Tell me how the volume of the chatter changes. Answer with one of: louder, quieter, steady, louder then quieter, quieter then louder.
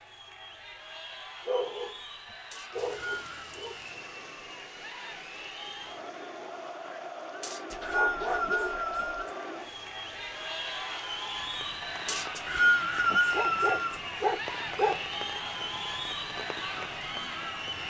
louder.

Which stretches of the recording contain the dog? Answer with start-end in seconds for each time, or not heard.
1.4-3.8, 7.7-9.2, 12.7-14.9.